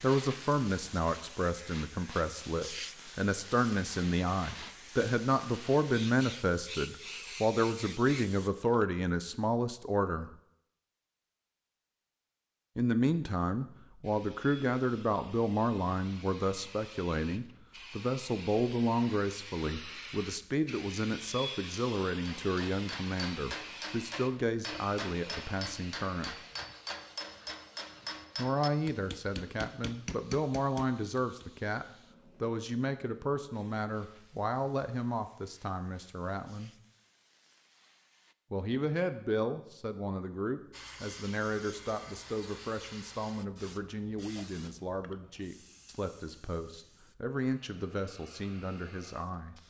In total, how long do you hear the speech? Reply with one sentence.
You can hear the speech for 43 seconds altogether.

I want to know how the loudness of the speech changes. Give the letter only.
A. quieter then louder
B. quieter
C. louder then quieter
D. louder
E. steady
B.